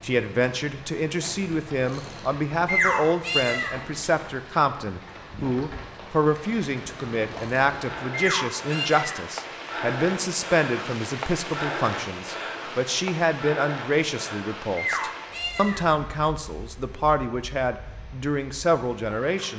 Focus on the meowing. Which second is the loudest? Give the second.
3 s.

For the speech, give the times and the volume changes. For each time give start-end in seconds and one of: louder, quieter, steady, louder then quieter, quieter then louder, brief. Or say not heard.
0.0-19.5 steady.